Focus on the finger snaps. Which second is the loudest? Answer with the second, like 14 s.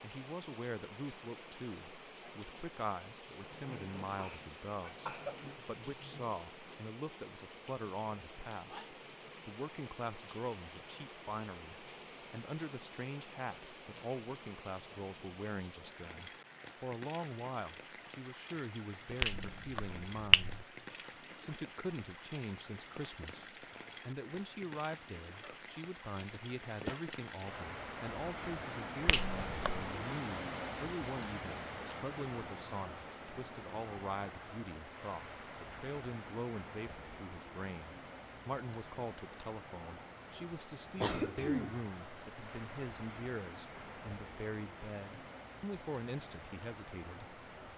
20 s.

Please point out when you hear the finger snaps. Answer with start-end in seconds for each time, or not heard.
19.2-20.6, 29.1-29.9.